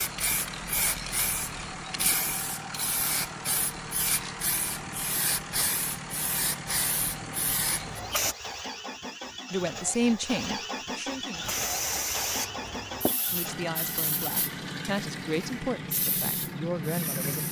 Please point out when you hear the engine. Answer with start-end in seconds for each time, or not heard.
0.0-17.4.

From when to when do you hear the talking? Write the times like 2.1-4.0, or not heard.
9.5-11.5, 13.3-17.4.